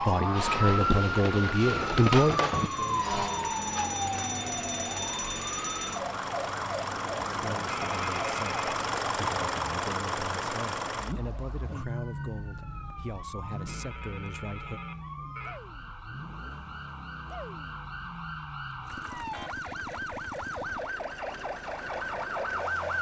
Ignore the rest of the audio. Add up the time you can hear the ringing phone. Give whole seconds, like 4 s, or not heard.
3 s.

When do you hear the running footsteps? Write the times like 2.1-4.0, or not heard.
not heard.